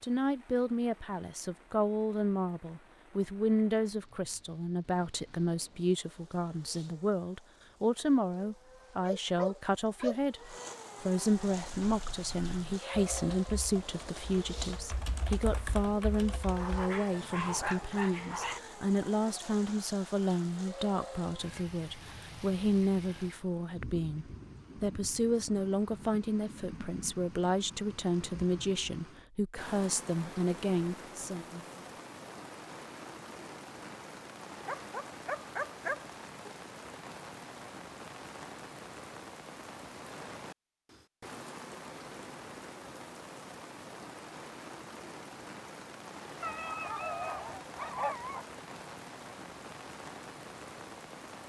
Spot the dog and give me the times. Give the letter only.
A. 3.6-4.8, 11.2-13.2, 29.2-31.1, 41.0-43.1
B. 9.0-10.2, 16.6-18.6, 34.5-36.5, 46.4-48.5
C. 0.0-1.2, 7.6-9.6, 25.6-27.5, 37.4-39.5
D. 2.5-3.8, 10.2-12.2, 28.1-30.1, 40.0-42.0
B.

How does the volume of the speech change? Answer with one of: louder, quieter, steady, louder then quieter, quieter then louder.
steady.